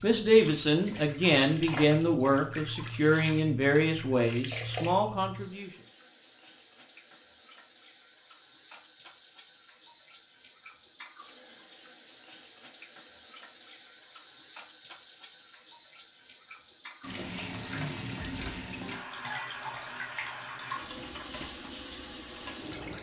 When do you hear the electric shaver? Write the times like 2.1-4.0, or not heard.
not heard.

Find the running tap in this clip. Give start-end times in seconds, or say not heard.
0.0-22.9.